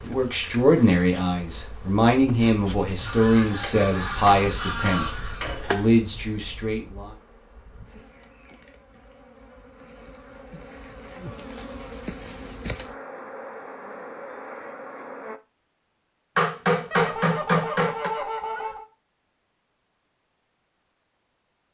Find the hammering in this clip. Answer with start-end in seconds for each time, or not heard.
3.6-5.8, 16.4-18.1.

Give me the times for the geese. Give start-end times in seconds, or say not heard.
3.0-5.5, 16.9-18.9.